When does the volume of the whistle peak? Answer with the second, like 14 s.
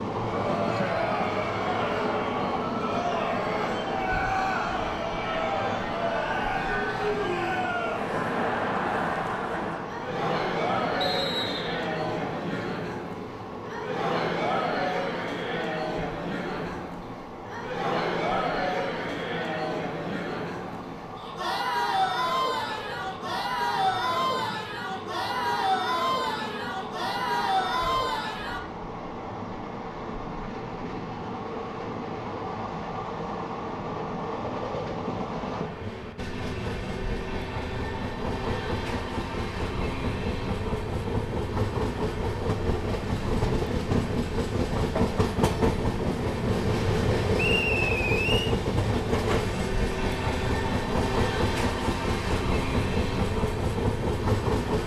48 s.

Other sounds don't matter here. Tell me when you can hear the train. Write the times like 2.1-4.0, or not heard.
0.0-54.8.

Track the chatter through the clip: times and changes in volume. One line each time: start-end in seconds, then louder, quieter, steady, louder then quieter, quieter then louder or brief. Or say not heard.
0.1-28.6 steady.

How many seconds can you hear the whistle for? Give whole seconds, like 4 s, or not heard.
2 s.